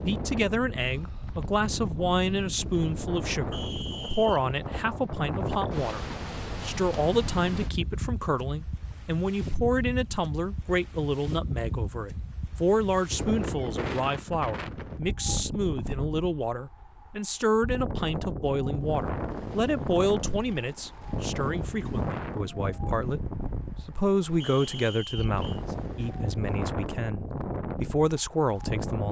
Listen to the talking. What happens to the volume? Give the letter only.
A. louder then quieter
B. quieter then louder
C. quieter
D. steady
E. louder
D.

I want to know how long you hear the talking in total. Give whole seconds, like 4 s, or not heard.
29 s.